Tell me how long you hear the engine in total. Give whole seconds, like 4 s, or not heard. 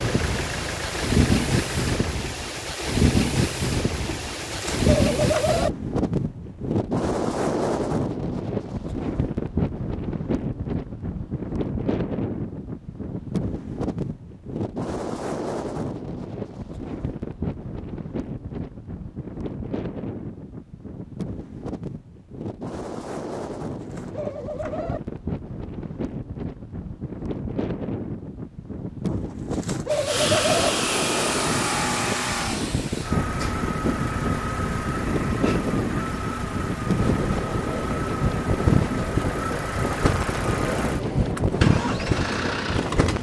15 s.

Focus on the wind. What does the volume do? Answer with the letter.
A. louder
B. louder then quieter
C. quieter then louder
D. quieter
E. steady
C.